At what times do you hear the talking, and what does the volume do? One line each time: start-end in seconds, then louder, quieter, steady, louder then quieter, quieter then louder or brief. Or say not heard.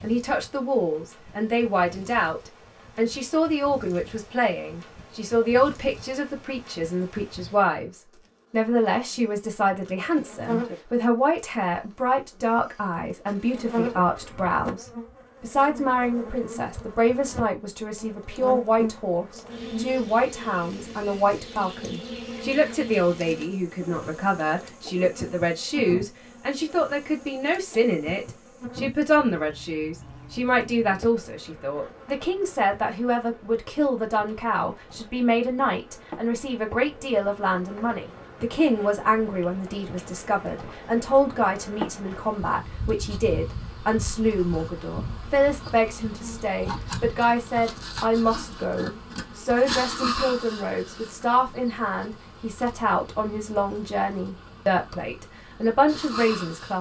0.0-56.7 steady.